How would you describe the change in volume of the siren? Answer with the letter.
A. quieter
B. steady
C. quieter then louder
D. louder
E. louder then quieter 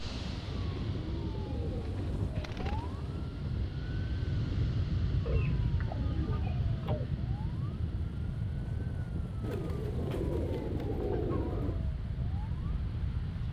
A.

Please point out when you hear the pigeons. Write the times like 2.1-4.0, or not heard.
0.5-3.0, 5.2-7.1, 9.4-11.8.